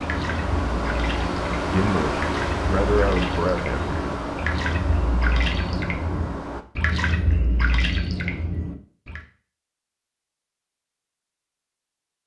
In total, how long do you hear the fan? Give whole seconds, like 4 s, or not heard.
7 s.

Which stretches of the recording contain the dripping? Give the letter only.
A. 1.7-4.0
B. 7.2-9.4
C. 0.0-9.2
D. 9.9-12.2
C.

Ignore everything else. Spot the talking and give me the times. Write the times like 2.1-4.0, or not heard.
1.7-4.0.